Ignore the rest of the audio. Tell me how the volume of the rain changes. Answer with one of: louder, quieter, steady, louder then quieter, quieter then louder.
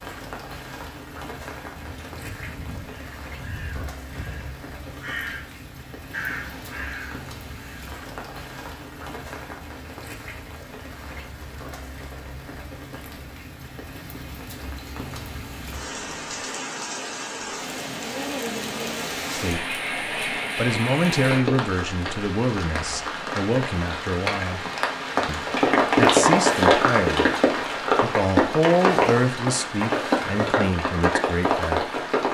louder.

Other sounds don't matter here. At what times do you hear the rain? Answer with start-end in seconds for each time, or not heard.
0.0-32.2.